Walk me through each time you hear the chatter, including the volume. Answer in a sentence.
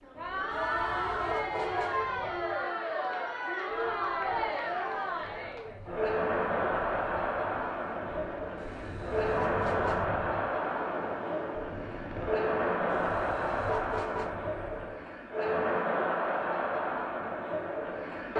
You can hear the chatter from 0.0 to 18.3 s, at a steady volume.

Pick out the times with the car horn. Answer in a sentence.
The car horn can be heard from 0.5 to 2.0 s, from 8.6 to 10.1 s and from 12.8 to 14.3 s.